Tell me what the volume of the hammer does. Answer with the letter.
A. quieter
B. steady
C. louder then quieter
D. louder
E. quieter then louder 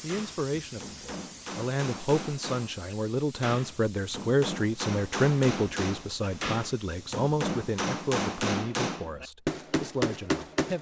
D.